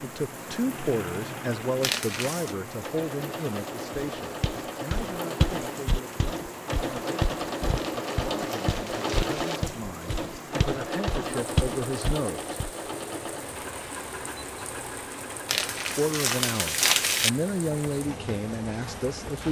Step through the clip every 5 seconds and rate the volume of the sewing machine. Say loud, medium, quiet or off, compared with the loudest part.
medium, loud, loud, medium.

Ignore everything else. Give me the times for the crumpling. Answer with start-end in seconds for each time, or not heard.
1.8-2.5, 7.8-9.6, 15.4-17.3.